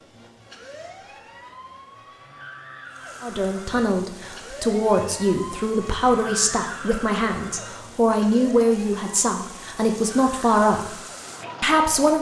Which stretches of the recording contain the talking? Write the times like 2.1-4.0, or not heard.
3.2-11.0, 11.6-12.1.